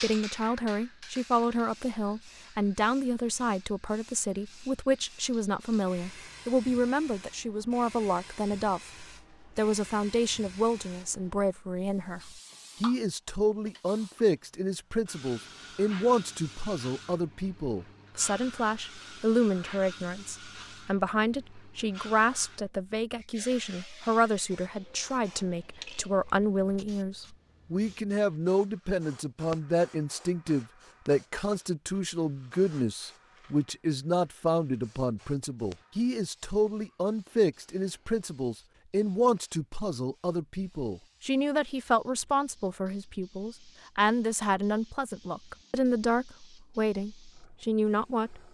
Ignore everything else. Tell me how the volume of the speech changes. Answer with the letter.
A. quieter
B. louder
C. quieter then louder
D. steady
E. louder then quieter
D.